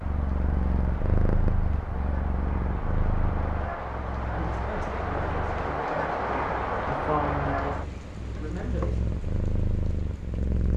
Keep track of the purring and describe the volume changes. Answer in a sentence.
The volume of the purring goes down, then up.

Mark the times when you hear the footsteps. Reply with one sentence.
You can't hear the footsteps here.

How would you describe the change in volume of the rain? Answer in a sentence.
The volume of the rain goes up, then down.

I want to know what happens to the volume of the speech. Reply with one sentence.
The volume of the speech goes up, then down.